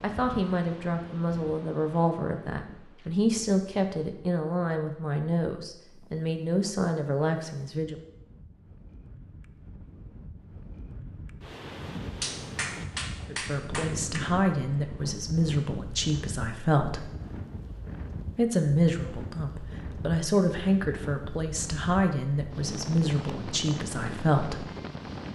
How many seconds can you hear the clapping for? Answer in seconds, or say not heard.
2 s.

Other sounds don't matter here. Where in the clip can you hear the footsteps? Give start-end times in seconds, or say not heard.
not heard.